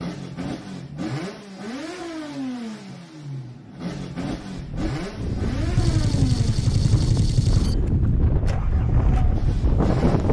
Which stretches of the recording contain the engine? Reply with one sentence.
You can hear the engine from 0.0 to 10.2 s.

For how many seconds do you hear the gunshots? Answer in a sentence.
The gunshots can be heard for 2 seconds in total.